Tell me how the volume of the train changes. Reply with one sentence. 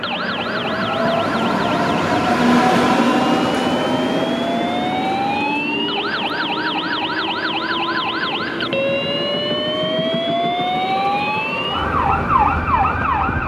The volume of the train goes down.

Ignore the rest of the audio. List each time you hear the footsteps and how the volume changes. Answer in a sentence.
You can't hear the footsteps here.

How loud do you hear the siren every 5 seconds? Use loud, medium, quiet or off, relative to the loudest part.
medium, loud, loud.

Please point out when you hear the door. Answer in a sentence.
The door can't be heard in this clip.